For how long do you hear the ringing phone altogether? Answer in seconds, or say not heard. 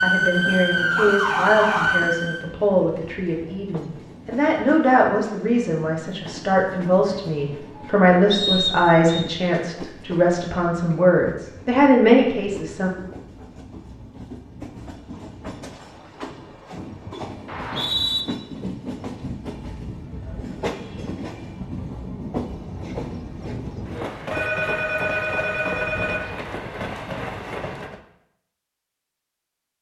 2 s.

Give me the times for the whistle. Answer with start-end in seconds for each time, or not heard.
8.3-9.2, 17.4-18.2.